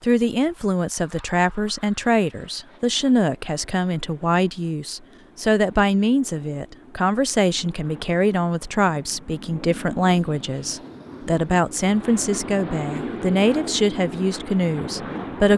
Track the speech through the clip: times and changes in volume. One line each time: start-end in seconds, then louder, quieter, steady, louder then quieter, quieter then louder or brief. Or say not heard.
0.0-15.5 steady.